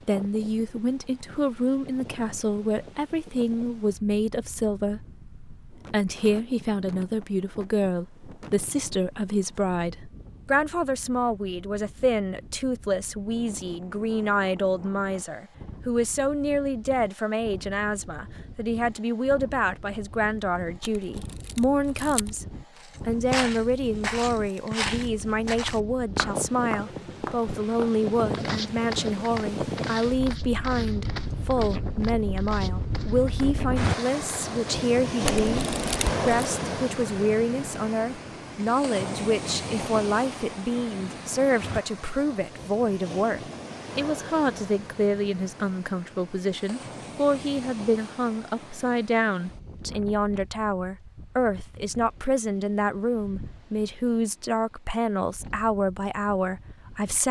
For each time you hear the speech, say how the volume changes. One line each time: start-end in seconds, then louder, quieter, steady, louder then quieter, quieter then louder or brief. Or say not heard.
0.1-22.4 steady
23.1-57.2 steady.